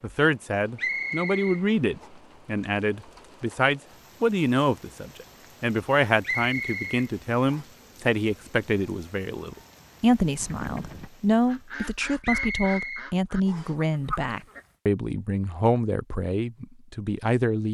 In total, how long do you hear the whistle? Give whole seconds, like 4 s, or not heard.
4 s.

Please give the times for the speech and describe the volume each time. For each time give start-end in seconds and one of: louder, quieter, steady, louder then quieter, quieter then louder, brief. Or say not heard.
0.0-17.6 steady.